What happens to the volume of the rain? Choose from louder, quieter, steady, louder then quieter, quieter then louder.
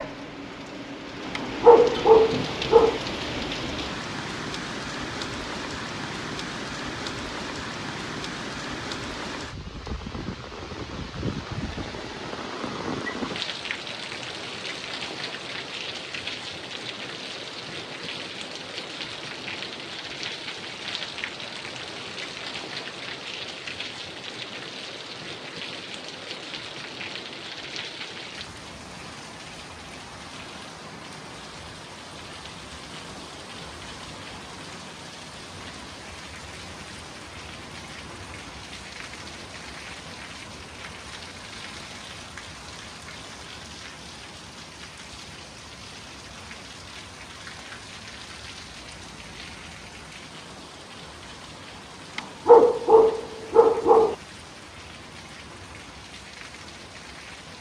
quieter.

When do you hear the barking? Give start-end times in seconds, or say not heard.
1.4-3.0, 52.1-54.1.